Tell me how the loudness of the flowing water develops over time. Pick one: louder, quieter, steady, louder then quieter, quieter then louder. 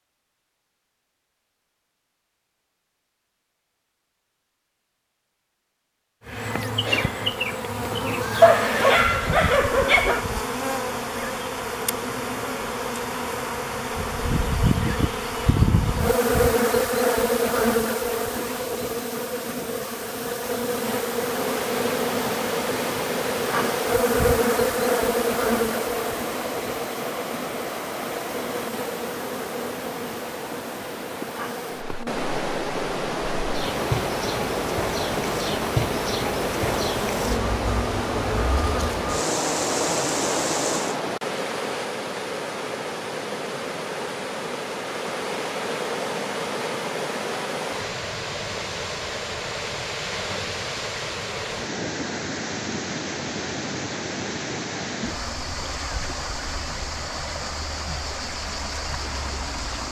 steady.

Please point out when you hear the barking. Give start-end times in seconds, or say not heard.
8.4-10.2.